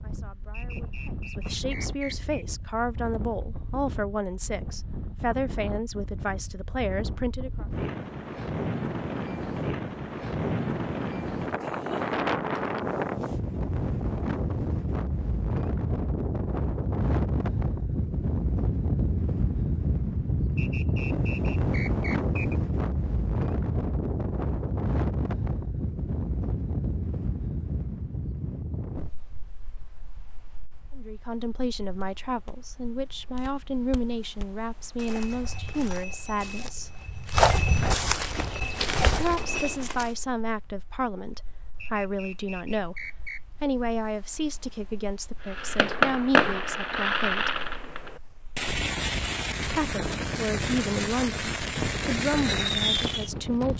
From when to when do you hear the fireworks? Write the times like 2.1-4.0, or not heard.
45.4-53.3.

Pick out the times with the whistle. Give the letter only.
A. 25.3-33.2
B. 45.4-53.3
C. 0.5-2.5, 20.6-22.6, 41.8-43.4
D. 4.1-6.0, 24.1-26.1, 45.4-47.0
C.